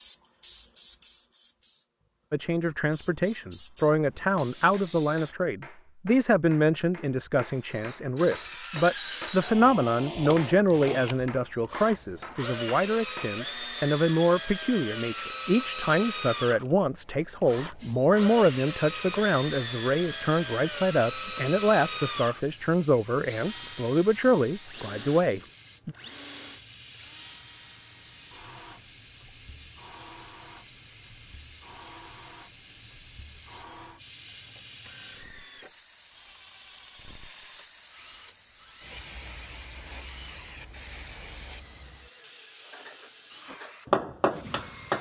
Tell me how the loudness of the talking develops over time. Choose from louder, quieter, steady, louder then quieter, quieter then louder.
steady.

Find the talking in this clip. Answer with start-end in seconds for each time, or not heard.
2.3-25.9.